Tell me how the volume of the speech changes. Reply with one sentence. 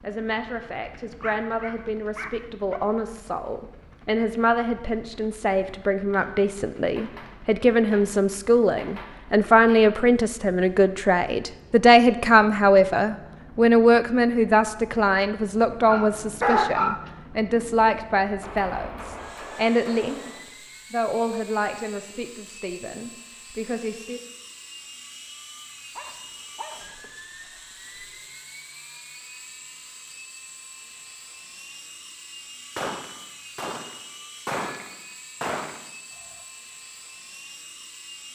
The loudness of the speech goes up, then down.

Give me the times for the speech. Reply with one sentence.
You can hear the speech from 0.0 to 20.3 s and from 20.9 to 24.2 s.